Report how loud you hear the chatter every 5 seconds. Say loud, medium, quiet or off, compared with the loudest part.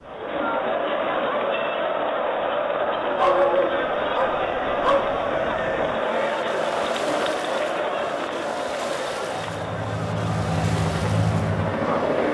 loud, loud, medium.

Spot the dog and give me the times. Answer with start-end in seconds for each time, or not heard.
3.1-5.2.